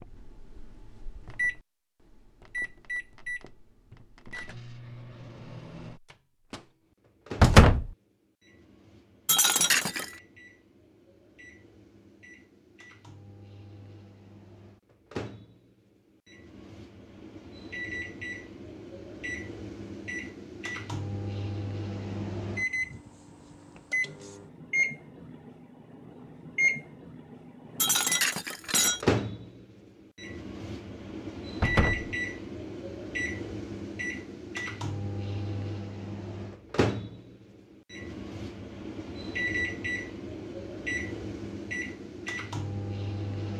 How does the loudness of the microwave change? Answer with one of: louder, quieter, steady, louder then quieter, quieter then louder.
quieter then louder.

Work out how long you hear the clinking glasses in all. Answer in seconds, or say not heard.
2 s.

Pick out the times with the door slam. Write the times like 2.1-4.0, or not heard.
7.4-7.9, 31.6-32.1.